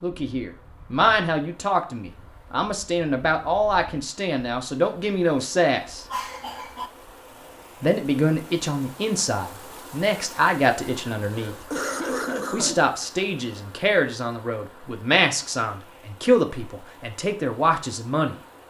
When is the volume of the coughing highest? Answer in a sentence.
The loudest moment of the coughing is at 12 seconds.